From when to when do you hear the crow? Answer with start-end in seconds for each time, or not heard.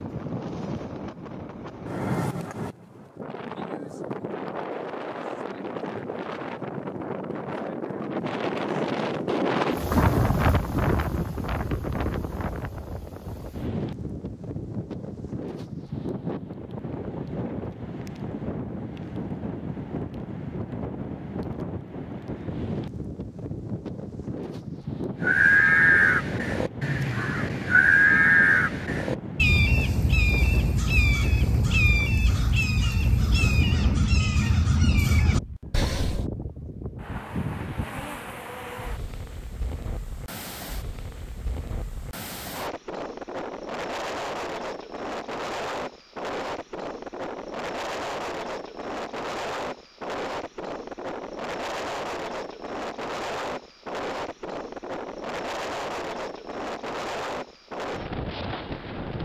25.2-36.2.